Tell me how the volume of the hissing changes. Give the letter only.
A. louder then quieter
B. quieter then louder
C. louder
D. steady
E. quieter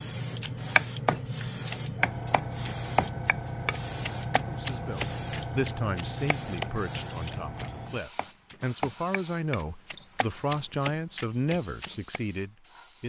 E.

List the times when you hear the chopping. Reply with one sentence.
You can hear the chopping from 0.4 to 12.2 s.